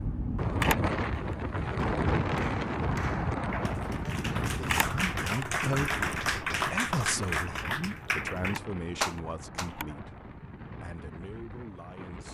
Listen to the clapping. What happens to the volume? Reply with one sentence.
The loudness of the clapping goes up.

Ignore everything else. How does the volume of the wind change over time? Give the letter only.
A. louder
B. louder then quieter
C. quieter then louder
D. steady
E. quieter
E.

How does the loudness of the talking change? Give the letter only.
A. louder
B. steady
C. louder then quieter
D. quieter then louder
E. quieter
E.